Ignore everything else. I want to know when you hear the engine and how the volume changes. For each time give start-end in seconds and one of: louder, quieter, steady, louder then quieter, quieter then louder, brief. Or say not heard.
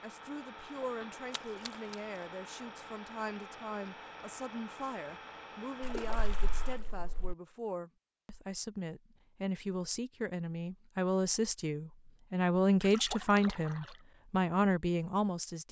0.0-6.8 steady.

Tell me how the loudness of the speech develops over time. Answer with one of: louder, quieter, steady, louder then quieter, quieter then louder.
louder.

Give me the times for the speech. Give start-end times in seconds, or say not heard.
0.0-15.6.